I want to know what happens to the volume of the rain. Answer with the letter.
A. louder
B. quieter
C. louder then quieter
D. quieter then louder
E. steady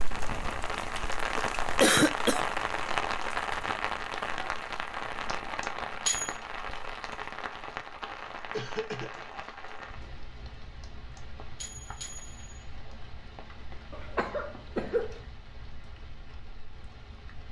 B.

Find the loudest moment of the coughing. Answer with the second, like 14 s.
2 s.